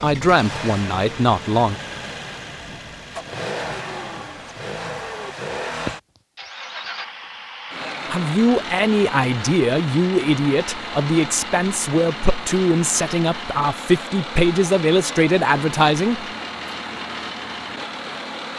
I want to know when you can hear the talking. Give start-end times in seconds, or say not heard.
0.0-1.8, 8.1-16.2.